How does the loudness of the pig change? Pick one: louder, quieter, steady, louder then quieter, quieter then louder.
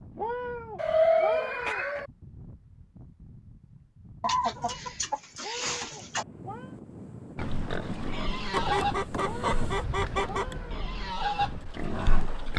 quieter then louder.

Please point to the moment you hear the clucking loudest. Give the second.
1 s.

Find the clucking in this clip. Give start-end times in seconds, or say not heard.
0.8-2.1, 4.2-6.2, 8.5-10.6.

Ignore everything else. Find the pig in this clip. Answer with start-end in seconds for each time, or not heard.
7.3-12.5.